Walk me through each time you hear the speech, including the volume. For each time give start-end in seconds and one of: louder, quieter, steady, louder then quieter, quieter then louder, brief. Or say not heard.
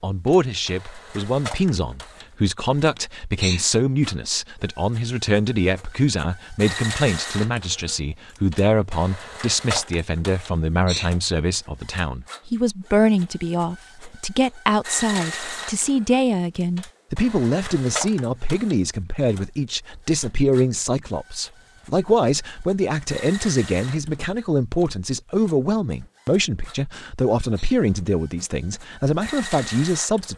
0.0-30.3 steady.